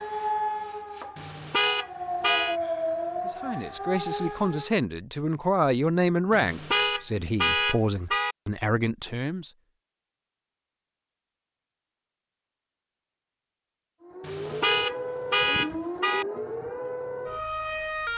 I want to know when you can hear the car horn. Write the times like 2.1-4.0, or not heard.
1.1-2.6, 6.3-8.3, 14.2-16.2.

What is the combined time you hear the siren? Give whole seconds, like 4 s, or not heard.
9 s.